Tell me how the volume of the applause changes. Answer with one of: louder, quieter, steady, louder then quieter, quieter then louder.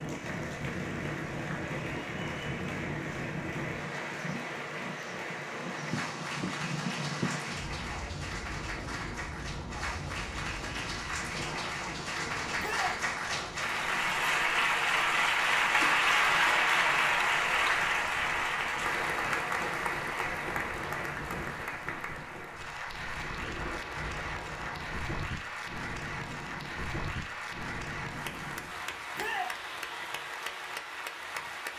louder then quieter.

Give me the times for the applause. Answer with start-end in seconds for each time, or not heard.
0.0-31.7.